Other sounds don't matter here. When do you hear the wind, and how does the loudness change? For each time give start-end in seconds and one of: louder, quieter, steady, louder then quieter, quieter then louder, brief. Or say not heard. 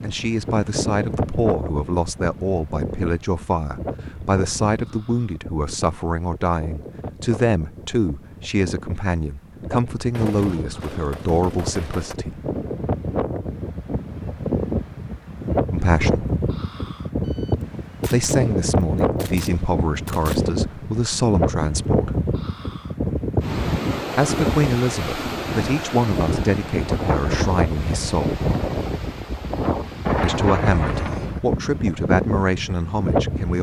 0.0-33.5 louder.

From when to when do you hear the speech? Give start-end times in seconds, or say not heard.
0.0-12.4, 15.7-16.2, 18.1-22.1, 24.1-28.4, 30.2-33.5.